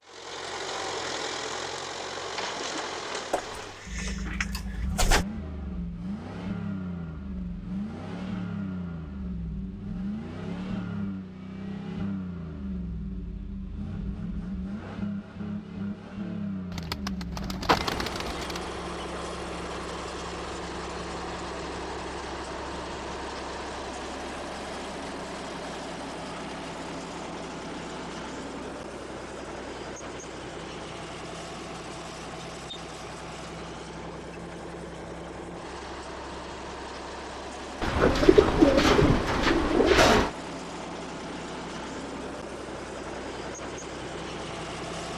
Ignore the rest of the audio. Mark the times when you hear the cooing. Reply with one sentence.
The cooing can be heard from 3.3 to 5.2 s, from 16.7 to 18.6 s and from 37.8 to 40.3 s.